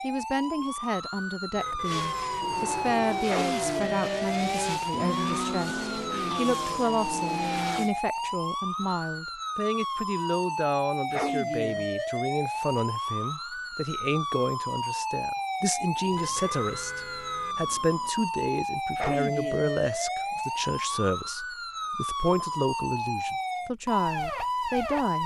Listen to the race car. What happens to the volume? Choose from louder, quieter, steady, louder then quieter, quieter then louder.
steady.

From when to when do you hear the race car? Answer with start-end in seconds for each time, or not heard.
1.8-7.9.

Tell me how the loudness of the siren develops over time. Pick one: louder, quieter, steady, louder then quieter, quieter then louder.
steady.